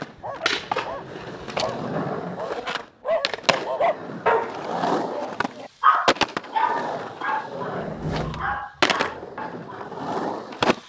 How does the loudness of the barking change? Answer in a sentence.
The volume of the barking goes up, then down.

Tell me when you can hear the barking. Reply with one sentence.
The barking can be heard from 0.1 to 9.9 s.